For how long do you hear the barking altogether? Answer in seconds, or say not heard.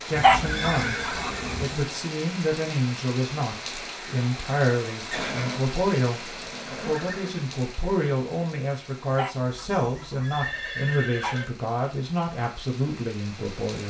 4 s.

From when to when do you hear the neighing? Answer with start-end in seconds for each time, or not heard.
0.1-1.6, 5.1-7.3, 9.8-11.4.